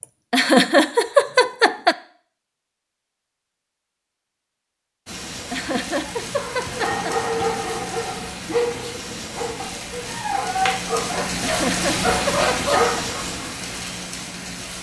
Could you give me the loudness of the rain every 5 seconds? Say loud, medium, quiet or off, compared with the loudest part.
off, medium, loud.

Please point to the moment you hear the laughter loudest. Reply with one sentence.
The volume of the laughter peaks at 1 second.